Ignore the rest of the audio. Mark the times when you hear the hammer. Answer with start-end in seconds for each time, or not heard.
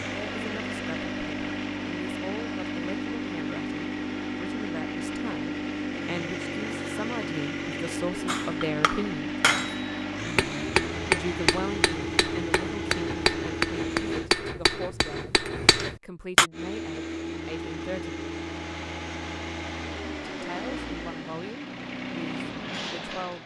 8.2-16.5.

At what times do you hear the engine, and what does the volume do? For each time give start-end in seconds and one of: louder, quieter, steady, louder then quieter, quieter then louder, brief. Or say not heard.
0.0-14.3 steady
16.5-23.4 steady.